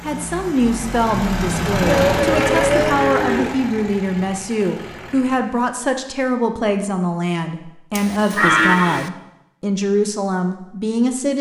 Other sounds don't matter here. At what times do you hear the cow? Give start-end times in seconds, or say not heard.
1.8-3.5, 8.0-9.1.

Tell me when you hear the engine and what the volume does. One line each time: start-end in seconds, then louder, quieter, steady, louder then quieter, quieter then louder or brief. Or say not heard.
0.0-5.6 louder then quieter.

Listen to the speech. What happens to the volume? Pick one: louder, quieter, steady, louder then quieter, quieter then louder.
steady.